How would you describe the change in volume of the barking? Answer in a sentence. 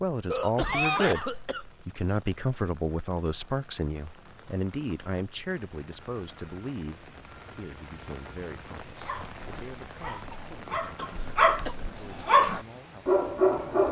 The volume of the barking goes up.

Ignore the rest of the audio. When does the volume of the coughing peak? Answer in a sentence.
The loudest moment of the coughing is at 1 second.